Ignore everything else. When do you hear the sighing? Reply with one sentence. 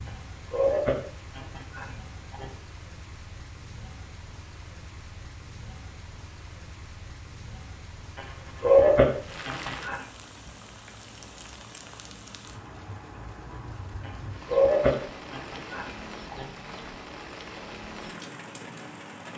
The sighing can be heard from 0.1 to 2.5 s, from 8.2 to 10.0 s and from 14.1 to 16.4 s.